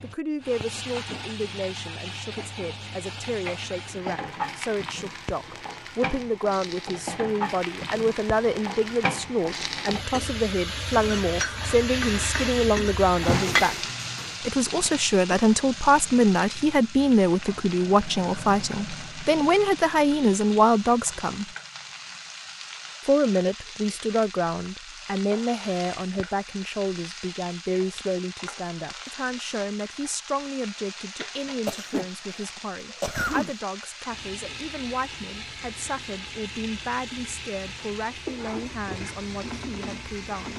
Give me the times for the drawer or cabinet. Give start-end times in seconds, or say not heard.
13.2-14.3.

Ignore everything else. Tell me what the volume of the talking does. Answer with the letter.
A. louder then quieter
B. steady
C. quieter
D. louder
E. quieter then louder
A.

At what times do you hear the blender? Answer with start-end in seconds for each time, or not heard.
not heard.